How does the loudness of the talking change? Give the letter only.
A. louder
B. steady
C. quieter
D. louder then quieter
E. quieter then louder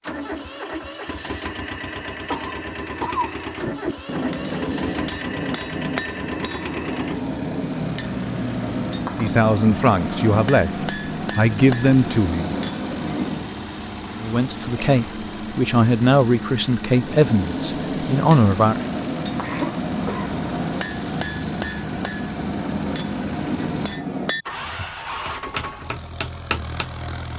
B.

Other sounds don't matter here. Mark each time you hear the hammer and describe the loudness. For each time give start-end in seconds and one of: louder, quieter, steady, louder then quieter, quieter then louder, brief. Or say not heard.
3.6-13.6 steady
16.9-26.9 quieter.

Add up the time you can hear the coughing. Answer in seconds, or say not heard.
3 s.